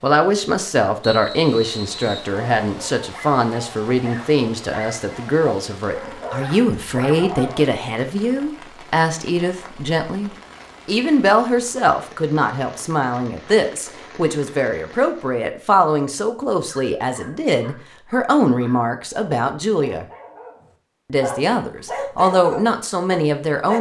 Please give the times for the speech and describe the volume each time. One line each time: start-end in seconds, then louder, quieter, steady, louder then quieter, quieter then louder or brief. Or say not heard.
0.0-20.1 steady
21.1-23.7 brief.